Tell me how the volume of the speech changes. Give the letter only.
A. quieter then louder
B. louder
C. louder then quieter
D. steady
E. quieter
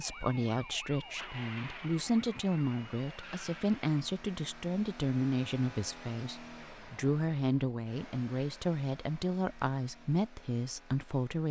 D.